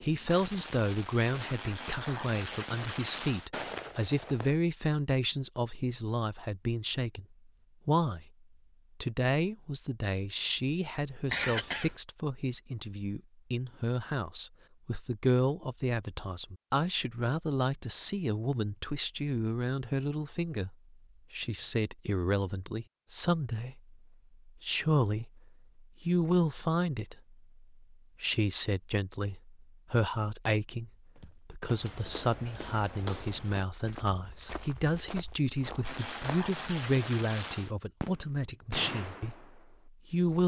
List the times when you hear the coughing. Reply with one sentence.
The coughing can be heard from 11.2 to 11.9 s.